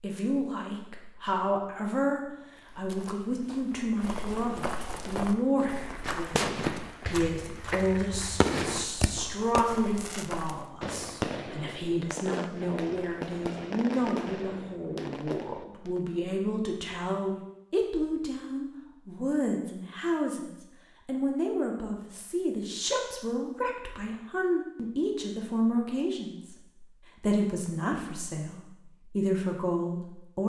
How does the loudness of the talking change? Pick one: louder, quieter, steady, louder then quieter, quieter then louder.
steady.